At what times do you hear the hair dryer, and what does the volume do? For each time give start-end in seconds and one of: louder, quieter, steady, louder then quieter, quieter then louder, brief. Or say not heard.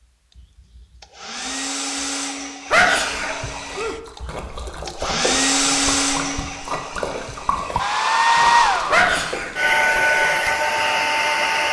0.3-11.6 louder.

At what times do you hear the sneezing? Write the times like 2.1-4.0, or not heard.
2.7-4.0, 8.9-9.6.